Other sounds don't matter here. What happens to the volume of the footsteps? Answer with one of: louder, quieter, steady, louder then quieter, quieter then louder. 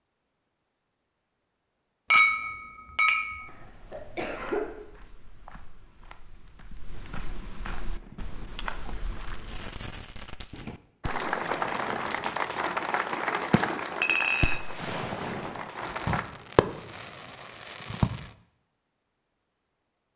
louder.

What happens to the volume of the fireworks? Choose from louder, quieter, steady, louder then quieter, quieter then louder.
louder.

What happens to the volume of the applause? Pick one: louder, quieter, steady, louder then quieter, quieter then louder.
quieter.